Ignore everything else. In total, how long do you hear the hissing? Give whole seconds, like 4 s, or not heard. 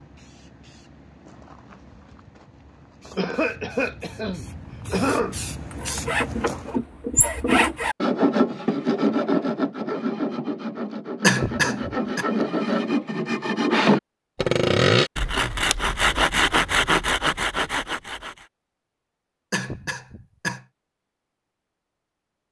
7 s.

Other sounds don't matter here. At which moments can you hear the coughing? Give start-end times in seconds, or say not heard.
3.1-5.4, 11.2-12.2, 19.5-20.6.